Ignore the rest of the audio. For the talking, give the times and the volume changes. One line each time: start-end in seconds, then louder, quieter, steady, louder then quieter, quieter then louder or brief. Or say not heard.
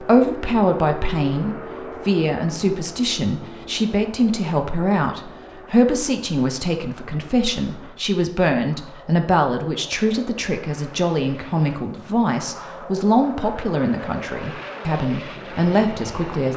0.0-16.5 steady.